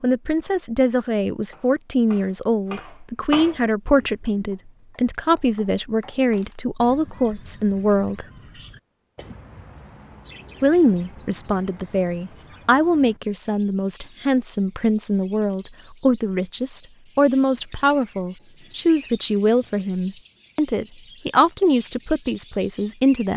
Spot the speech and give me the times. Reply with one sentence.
The speech can be heard from 0.0 to 8.2 s and from 10.6 to 23.3 s.